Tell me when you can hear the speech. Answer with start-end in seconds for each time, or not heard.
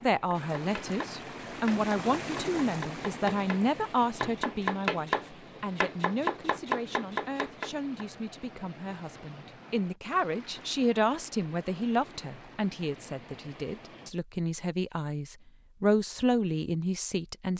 0.0-17.5.